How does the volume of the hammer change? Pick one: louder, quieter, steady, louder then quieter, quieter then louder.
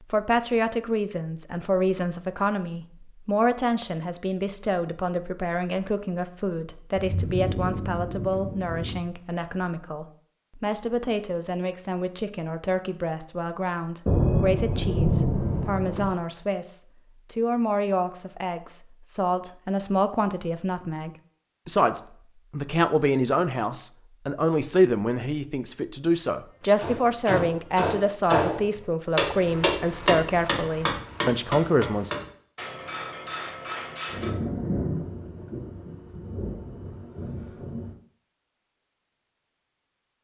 quieter.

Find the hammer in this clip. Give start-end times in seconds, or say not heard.
26.8-34.3.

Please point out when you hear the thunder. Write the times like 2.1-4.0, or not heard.
7.0-8.9, 14.1-16.1, 34.0-38.0.